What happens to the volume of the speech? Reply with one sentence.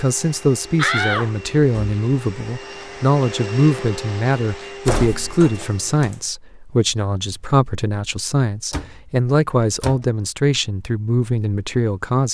The loudness of the speech stays about the same.